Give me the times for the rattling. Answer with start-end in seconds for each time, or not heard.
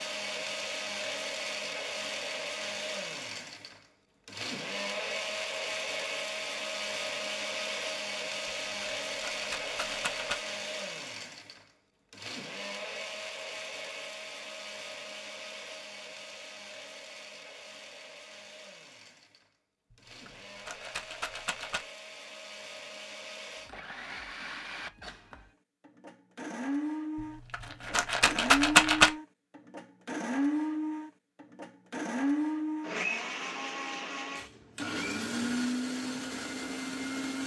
8.4-10.4, 19.9-21.9, 27.1-29.1.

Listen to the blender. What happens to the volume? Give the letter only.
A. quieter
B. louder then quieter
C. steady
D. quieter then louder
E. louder
D.